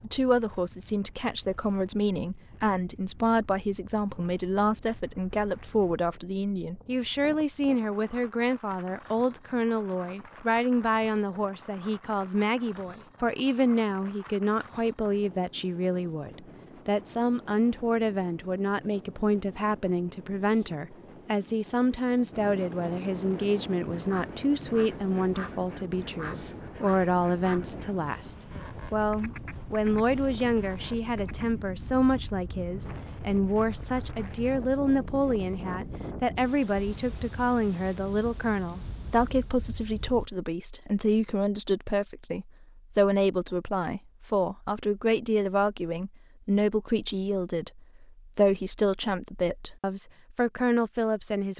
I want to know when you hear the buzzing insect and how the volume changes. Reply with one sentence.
The buzzing insect can't be heard in this clip.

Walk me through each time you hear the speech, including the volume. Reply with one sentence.
You can hear the speech from 0.0 to 51.5 s, at a steady volume.